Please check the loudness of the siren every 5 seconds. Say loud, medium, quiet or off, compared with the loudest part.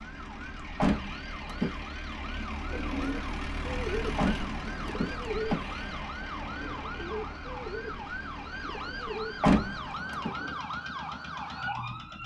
medium, loud, loud.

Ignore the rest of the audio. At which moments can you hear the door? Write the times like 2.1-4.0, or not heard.
0.8-1.8, 4.2-5.8, 9.4-10.3.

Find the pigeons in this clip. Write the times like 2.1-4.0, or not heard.
2.6-10.6.